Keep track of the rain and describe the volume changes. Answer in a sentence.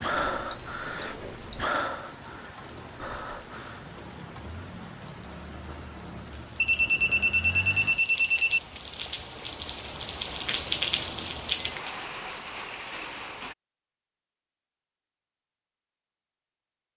The volume of the rain goes up.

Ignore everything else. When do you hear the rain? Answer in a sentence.
The rain can be heard from 0.0 to 13.6 s.